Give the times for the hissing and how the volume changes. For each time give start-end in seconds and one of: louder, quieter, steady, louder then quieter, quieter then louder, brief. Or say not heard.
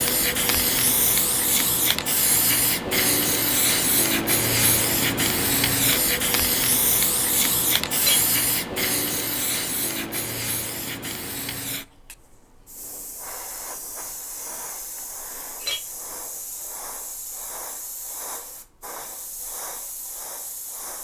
0.0-20.9 quieter.